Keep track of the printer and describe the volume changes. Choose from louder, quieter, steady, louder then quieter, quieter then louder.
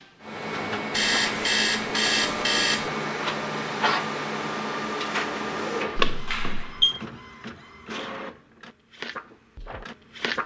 quieter.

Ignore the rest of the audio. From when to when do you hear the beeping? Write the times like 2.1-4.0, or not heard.
0.9-2.9, 6.0-7.0.